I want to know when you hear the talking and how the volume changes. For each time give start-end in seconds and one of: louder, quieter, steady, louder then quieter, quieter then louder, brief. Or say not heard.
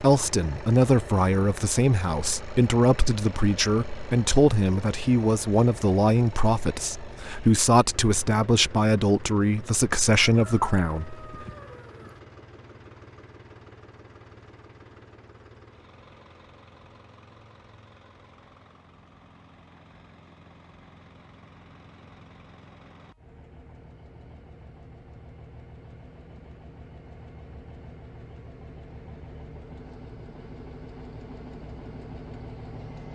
0.0-11.2 steady.